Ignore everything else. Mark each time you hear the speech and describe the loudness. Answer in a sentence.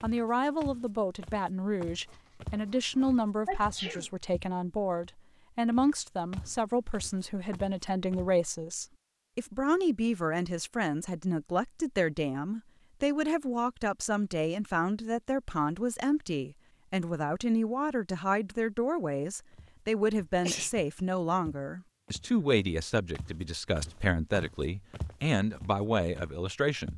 You can hear the speech from 0.0 to 26.9 s, at a steady volume.